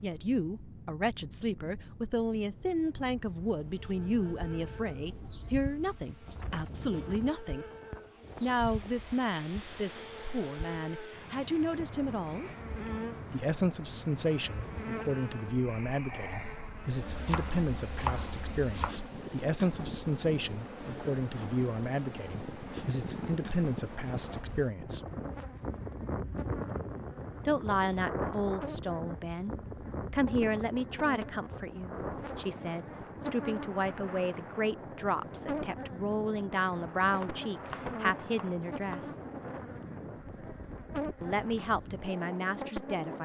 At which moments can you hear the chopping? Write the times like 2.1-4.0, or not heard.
17.1-18.9, 37.1-39.1.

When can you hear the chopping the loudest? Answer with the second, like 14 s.
18 s.